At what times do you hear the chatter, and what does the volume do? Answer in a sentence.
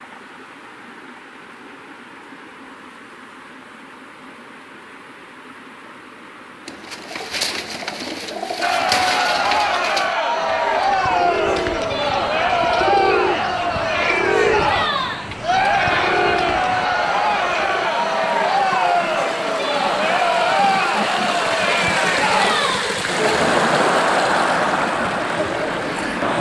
You can hear the chatter from 8.6 to 26.3 s, at a steady volume.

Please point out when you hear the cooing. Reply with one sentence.
The cooing can be heard from 6.7 to 17.9 s.